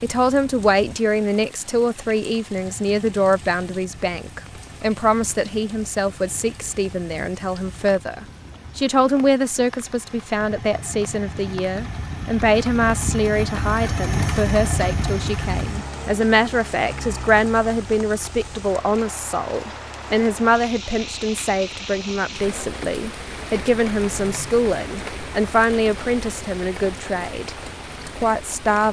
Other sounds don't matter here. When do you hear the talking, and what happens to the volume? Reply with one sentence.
The talking can be heard from 0.0 to 28.8 s, at a steady volume.